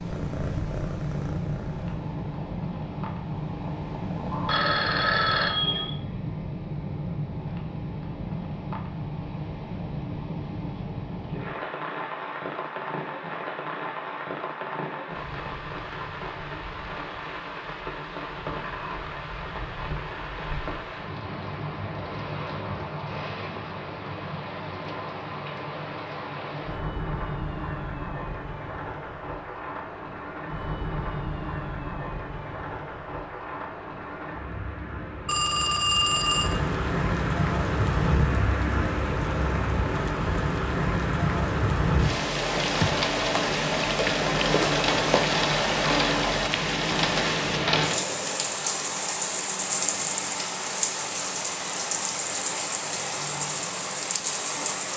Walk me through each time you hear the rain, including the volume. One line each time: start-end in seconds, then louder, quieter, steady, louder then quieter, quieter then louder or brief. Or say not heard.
0.0-54.9 louder.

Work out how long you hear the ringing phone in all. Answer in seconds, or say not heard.
3 s.